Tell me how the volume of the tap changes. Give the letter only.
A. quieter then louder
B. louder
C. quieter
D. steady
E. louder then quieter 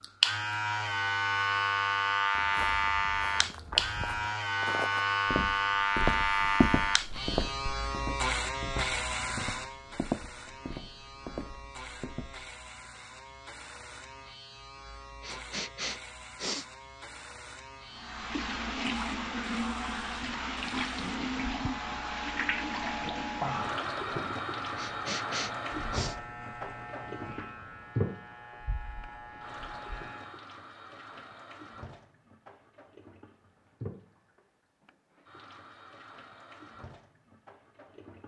C.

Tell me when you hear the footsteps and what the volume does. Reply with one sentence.
You can hear the footsteps from 2.3 to 12.5 s, getting louder then quieter.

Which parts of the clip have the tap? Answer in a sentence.
You can hear the tap from 17.9 to 38.2 s.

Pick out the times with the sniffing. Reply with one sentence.
You can hear the sniffing from 15.2 to 16.6 s and from 24.8 to 26.1 s.